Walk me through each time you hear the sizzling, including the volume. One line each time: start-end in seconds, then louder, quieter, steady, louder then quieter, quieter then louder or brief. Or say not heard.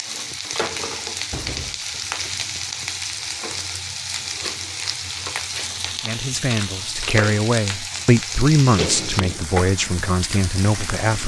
0.0-11.2 steady.